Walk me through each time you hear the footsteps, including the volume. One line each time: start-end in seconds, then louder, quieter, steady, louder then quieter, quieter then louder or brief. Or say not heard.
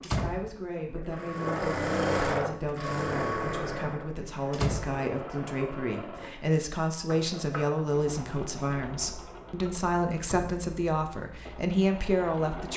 not heard.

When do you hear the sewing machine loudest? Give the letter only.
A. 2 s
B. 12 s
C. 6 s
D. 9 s
A.